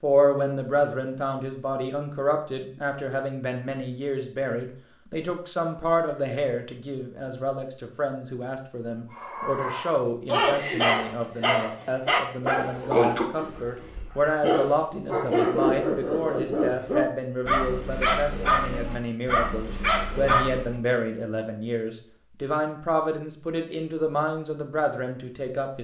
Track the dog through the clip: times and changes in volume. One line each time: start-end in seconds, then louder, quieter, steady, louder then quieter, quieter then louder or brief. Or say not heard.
9.1-20.8 steady.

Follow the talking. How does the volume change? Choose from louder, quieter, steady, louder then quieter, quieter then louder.
steady.